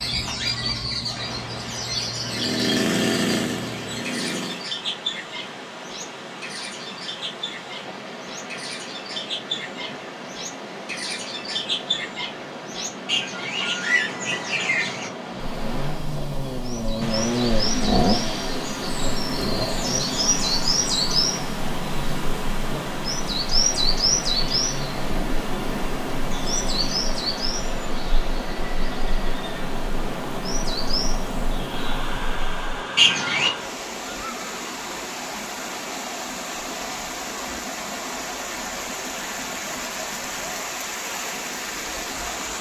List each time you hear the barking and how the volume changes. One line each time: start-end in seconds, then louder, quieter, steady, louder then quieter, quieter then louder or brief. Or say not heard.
not heard.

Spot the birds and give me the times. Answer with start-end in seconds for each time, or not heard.
0.0-33.5.